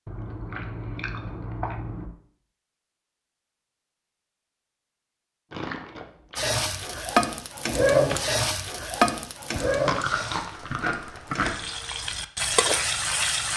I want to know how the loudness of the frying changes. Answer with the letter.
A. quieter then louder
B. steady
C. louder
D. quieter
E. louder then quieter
A.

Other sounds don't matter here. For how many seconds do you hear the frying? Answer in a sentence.
You can hear the frying for 7 seconds altogether.